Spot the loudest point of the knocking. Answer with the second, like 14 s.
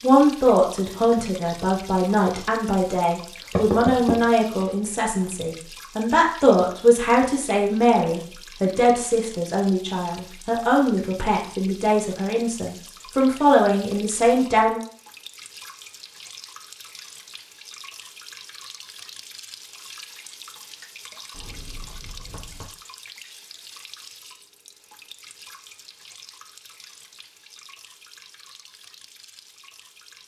4 s.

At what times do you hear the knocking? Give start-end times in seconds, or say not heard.
3.5-4.7, 21.3-22.7.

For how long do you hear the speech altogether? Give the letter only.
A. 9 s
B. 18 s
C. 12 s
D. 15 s
D.